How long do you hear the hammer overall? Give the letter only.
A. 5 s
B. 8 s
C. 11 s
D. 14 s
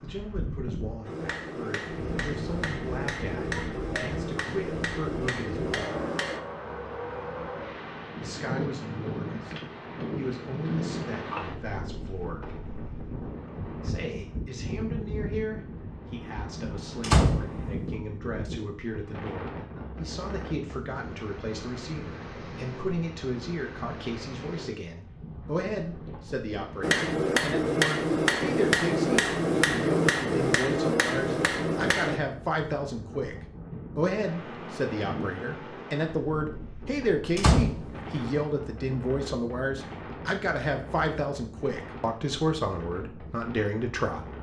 C.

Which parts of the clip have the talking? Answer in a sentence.
You can hear the talking from 0.0 to 6.0 s, from 8.2 to 9.6 s, from 10.2 to 12.6 s and from 13.8 to 44.3 s.